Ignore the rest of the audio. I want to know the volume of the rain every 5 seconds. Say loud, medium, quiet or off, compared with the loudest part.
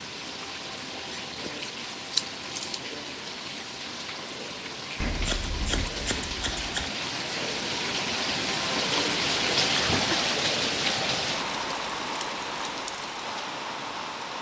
medium, loud, loud.